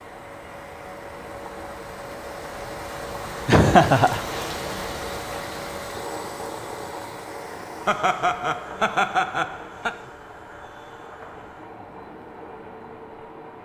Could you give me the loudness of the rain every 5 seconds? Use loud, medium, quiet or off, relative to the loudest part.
loud, loud, medium.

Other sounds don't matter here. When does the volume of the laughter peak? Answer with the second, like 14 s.
4 s.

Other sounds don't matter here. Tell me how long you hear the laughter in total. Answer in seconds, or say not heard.
3 s.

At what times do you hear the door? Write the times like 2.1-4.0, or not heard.
not heard.